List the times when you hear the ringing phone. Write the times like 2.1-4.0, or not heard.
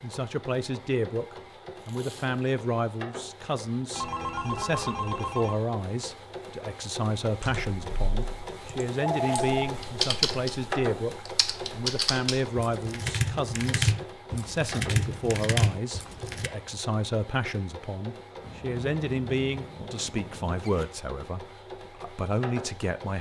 3.9-5.5, 8.9-9.8, 18.4-20.7.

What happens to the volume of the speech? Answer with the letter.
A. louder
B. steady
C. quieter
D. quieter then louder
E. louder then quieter
B.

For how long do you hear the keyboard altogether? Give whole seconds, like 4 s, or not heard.
9 s.